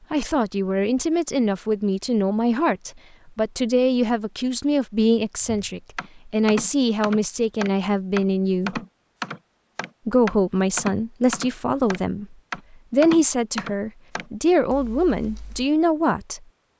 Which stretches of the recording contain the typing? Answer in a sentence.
You can hear the typing from 5.5 to 15.7 s.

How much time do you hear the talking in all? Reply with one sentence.
You can hear the talking for 15 seconds altogether.